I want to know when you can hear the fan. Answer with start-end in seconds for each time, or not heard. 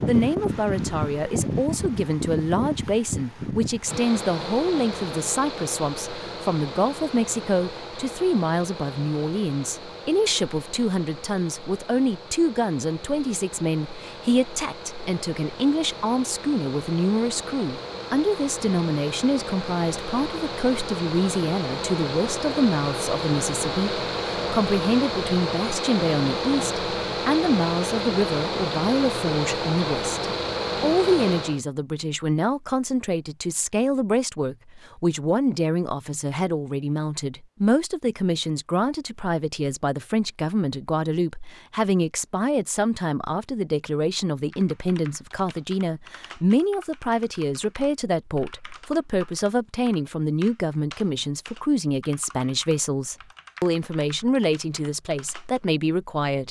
0.0-31.6.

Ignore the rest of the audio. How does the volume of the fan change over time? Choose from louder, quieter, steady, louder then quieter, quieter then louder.
quieter then louder.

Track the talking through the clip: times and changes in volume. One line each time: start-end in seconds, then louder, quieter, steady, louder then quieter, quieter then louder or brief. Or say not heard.
0.1-56.4 steady.